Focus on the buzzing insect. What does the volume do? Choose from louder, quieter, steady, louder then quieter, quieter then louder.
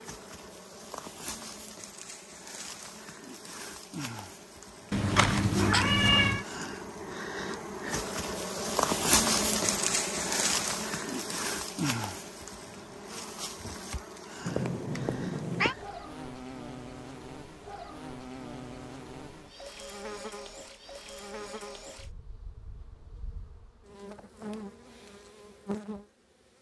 louder then quieter.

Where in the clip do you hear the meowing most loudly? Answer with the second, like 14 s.
6 s.